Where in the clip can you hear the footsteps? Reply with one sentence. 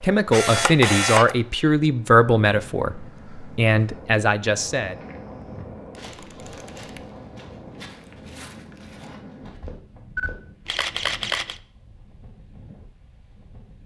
The footsteps can be heard from 4.8 to 10.3 s.